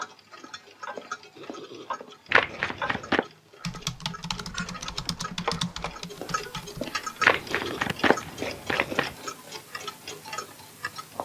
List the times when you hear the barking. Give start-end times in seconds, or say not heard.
not heard.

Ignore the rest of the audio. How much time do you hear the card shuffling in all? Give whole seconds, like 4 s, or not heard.
3 s.